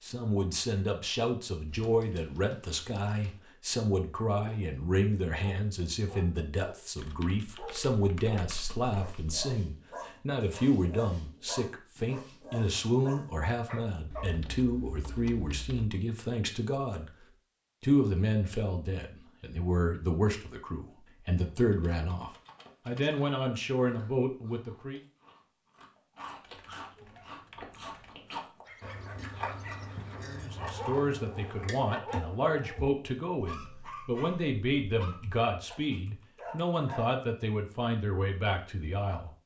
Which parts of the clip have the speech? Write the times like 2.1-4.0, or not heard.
0.0-17.1, 17.8-25.0, 30.2-39.3.